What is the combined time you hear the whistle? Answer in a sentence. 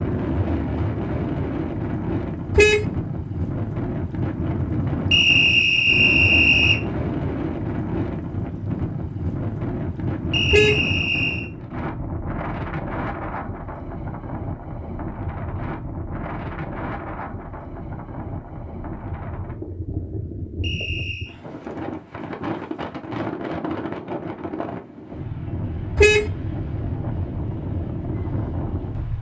You can hear the whistle for 4 seconds altogether.